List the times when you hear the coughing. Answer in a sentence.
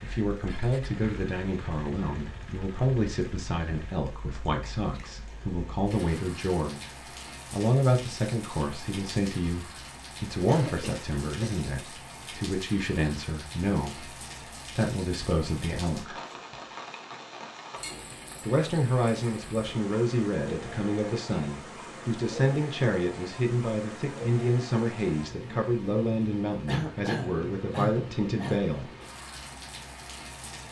The coughing can be heard from 4.6 to 5.2 s, from 10.4 to 11.6 s and from 26.6 to 28.6 s.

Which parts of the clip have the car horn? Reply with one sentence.
The car horn can't be heard in this clip.